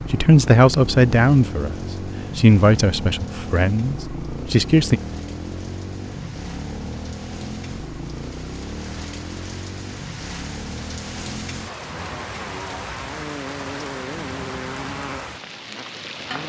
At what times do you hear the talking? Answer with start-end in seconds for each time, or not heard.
0.1-5.0.